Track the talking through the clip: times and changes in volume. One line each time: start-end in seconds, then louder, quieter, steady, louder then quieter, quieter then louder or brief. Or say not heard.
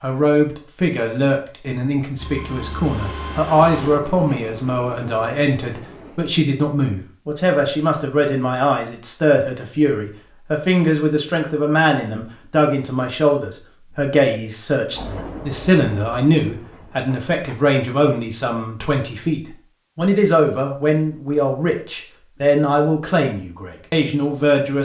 0.0-24.8 steady.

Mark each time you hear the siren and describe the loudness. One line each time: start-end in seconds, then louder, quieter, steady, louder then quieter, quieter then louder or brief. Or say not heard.
not heard.